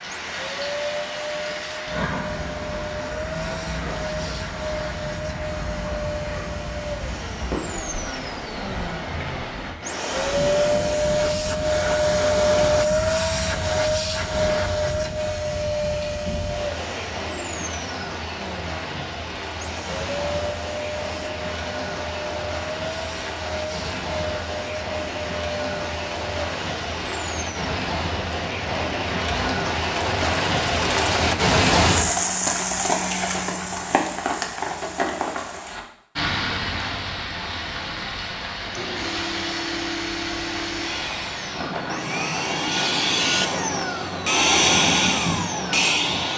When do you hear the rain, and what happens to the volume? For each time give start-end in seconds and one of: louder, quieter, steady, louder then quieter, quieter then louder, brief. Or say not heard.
0.0-46.3 louder then quieter.